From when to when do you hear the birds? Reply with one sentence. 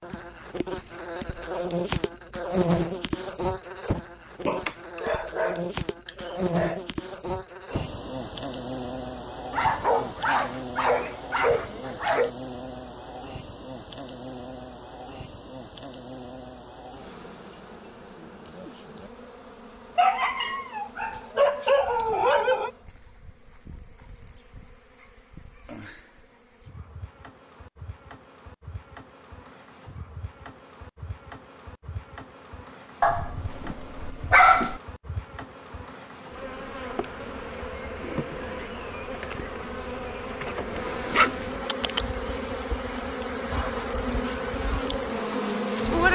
The birds can't be heard in this clip.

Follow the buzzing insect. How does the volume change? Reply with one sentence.
The loudness of the buzzing insect goes down, then up.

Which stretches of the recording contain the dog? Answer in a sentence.
You can hear the dog from 4.5 to 6.8 s, from 9.5 to 12.3 s, from 19.9 to 22.7 s, from 33.0 to 34.8 s and from 41.1 to 42.1 s.